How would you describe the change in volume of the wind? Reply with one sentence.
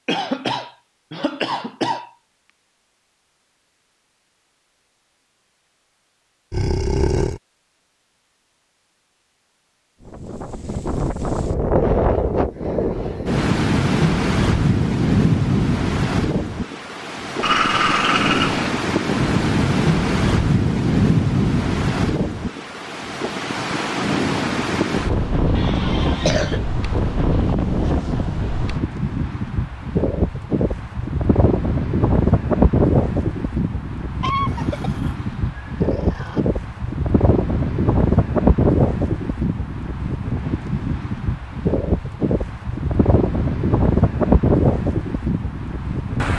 The loudness of the wind stays about the same.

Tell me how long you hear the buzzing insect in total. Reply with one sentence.
You can't hear the buzzing insect here.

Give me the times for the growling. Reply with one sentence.
You can hear the growling from 6.5 to 7.4 s, from 17.4 to 18.7 s and from 34.5 to 36.4 s.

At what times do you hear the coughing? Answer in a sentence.
The coughing can be heard from 0.1 to 2.1 s, from 25.6 to 26.6 s and from 34.2 to 34.9 s.